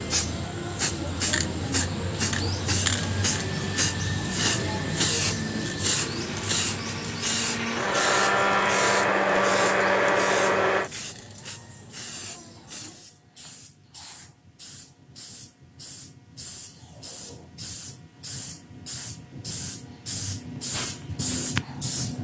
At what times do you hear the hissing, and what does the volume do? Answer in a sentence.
The hissing can be heard from 0.0 to 22.2 s, getting quieter then louder.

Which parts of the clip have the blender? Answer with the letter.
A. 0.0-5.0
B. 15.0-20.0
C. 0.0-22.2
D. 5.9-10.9
D.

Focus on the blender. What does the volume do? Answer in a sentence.
The volume of the blender goes up.